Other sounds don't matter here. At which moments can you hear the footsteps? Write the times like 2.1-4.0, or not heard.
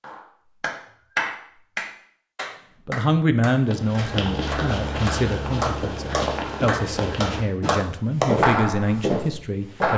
3.6-9.9.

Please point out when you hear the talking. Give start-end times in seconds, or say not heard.
2.9-9.9.